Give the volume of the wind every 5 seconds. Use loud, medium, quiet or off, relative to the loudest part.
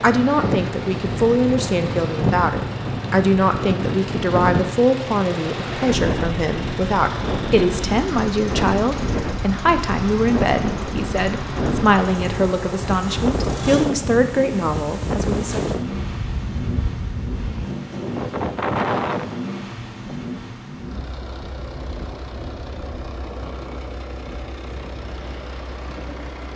loud, loud, loud, loud, quiet, quiet.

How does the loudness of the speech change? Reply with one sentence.
The volume of the speech stays about the same.